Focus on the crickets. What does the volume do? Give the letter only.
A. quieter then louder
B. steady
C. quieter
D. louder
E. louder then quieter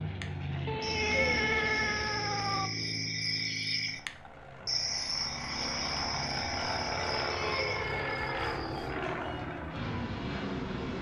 E.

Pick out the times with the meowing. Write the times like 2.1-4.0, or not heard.
0.7-2.7, 7.2-8.4.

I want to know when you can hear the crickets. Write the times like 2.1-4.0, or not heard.
0.0-8.9.